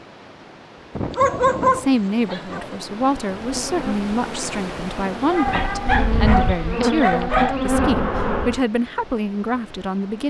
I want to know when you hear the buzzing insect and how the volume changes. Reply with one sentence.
The buzzing insect can be heard from 3.4 to 8.6 s, getting louder.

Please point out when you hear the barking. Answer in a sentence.
You can hear the barking from 1.1 to 2.8 s and from 5.3 to 7.5 s.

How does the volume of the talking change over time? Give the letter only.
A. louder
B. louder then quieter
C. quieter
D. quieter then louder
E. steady
E.